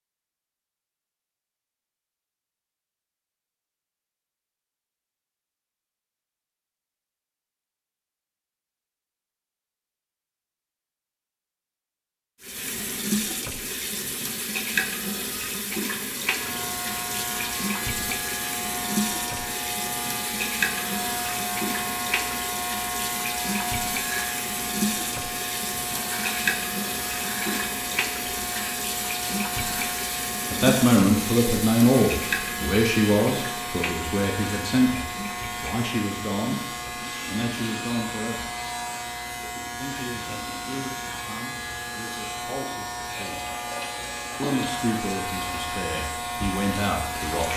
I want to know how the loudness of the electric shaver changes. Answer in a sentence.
The loudness of the electric shaver stays about the same.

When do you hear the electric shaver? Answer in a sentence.
The electric shaver can be heard from 16.2 to 47.5 s.